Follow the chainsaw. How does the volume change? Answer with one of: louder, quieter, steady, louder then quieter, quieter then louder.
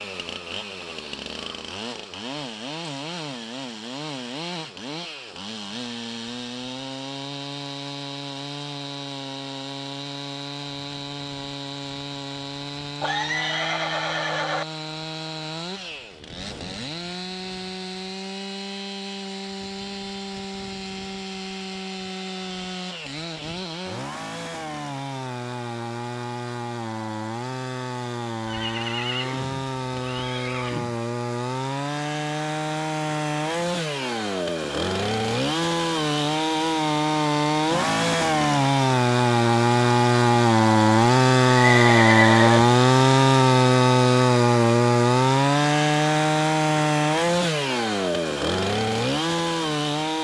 louder.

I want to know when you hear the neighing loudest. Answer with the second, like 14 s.
42 s.